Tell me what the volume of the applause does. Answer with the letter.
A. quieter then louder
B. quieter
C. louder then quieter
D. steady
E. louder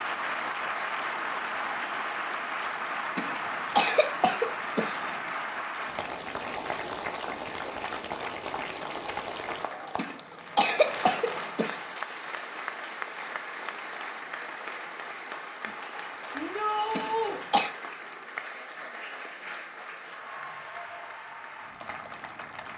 B.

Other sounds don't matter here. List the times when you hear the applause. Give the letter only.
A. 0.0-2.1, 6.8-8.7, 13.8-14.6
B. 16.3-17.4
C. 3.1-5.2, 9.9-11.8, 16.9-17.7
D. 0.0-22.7
D.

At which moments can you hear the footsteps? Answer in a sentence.
You can't hear the footsteps here.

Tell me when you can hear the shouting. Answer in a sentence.
You can hear the shouting from 16.3 to 17.4 s.